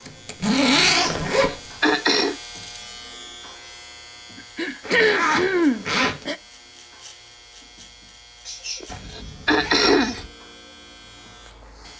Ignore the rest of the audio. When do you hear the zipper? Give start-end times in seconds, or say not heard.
0.1-1.9, 4.8-6.2, 8.8-10.3.